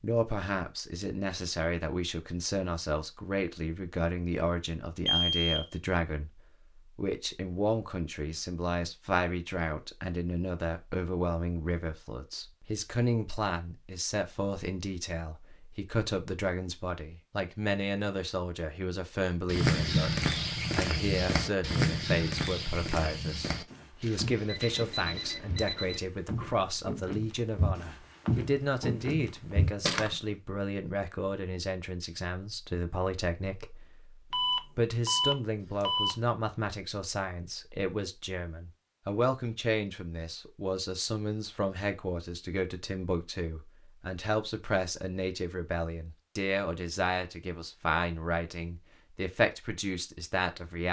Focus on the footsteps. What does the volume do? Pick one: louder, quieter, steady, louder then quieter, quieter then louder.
quieter then louder.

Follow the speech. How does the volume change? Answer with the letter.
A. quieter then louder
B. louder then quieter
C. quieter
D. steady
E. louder
D.